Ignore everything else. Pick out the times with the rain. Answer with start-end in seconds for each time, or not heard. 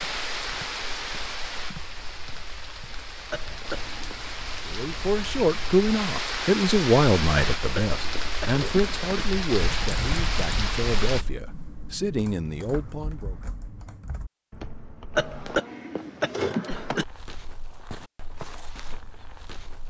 0.0-11.2.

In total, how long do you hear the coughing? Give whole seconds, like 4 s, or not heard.
5 s.